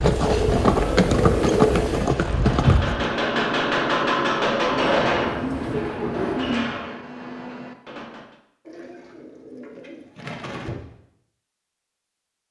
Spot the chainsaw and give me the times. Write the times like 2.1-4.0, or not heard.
not heard.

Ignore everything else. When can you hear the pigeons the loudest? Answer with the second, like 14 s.
2 s.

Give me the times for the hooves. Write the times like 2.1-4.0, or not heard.
0.0-3.1.